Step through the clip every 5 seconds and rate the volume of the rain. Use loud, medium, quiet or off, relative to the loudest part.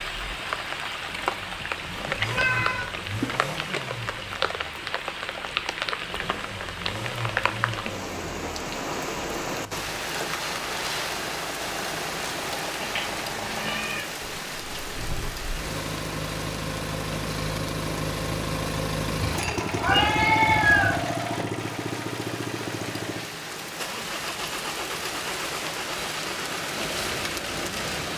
loud, loud, loud, medium, medium, loud.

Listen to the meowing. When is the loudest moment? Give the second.
21 s.